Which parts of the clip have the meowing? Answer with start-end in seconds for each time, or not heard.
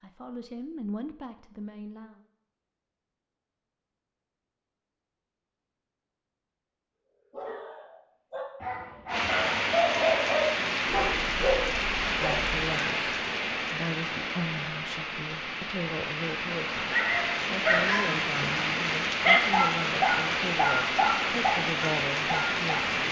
not heard.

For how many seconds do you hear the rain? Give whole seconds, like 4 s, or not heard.
14 s.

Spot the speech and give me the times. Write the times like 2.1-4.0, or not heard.
0.0-2.2, 12.1-23.0.